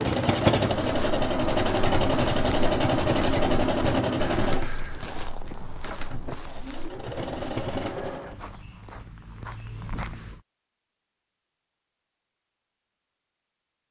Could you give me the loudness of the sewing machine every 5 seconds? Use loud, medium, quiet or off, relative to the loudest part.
loud, medium, off.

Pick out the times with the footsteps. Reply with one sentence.
You can hear the footsteps from 0.7 to 10.4 s.